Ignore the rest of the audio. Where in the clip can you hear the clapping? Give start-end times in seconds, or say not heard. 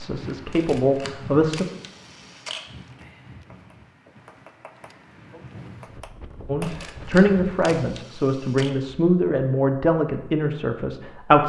3.4-6.8.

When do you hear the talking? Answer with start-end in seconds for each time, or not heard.
0.0-1.6, 6.5-11.4.